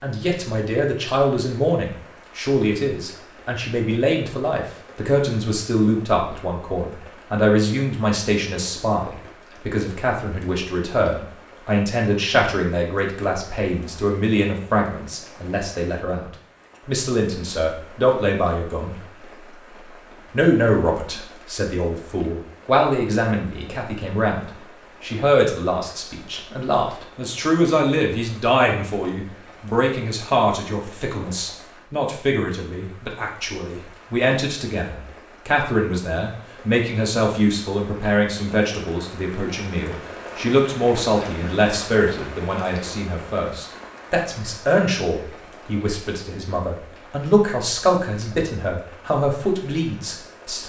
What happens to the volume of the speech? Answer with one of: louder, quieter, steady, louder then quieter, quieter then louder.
steady.